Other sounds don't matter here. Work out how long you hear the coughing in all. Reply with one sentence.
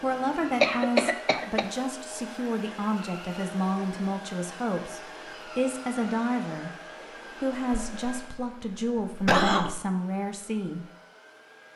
You can hear the coughing for 3 seconds altogether.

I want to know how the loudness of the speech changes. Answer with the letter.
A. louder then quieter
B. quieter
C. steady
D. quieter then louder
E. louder
C.